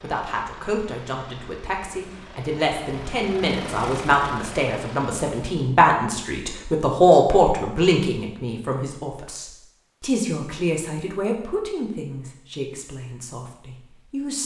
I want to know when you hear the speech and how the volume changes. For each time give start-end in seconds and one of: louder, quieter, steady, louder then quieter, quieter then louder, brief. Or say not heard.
0.0-14.4 louder then quieter.